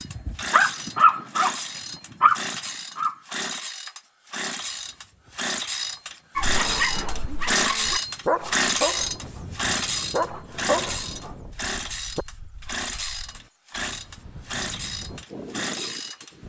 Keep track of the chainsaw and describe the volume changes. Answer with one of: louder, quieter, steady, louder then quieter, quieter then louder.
louder then quieter.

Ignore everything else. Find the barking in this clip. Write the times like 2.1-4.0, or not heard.
0.0-3.1, 6.3-12.2.